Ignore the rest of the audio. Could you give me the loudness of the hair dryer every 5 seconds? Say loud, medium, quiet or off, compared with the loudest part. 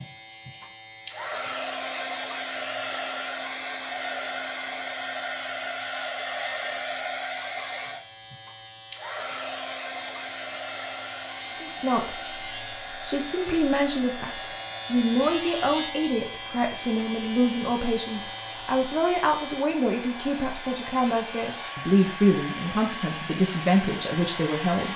loud, loud, medium, medium, loud.